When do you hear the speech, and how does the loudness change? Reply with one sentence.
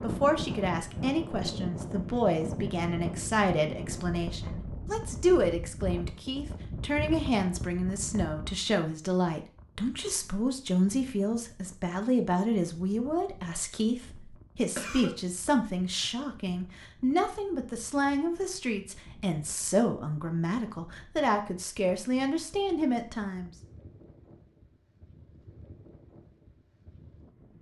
The speech can be heard from 0.0 to 23.5 s, at a steady volume.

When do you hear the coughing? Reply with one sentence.
The coughing can be heard from 14.8 to 15.2 s.